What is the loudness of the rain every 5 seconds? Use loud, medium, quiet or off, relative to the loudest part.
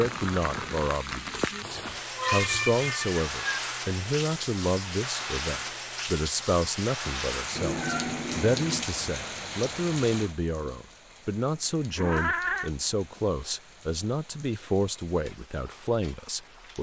loud, loud, quiet, quiet.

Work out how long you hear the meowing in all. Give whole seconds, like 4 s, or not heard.
4 s.